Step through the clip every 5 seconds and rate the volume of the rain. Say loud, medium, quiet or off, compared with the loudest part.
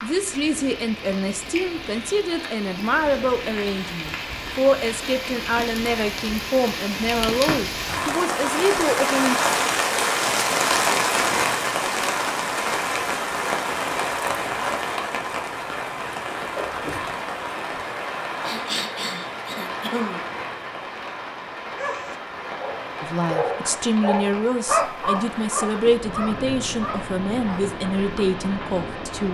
medium, loud, loud, medium, medium, medium.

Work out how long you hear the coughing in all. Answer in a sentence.
You can hear the coughing for 2 seconds altogether.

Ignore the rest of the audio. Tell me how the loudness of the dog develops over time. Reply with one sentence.
The volume of the dog goes up, then down.